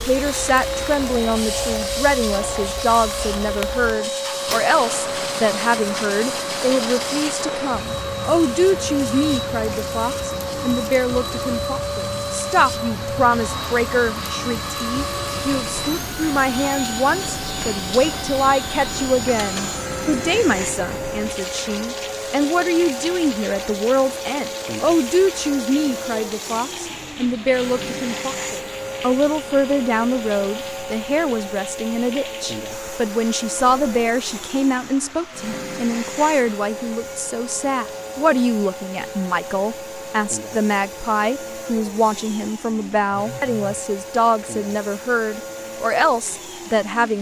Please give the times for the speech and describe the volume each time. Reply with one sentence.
You can hear the speech from 0.0 to 47.1 s, at a steady volume.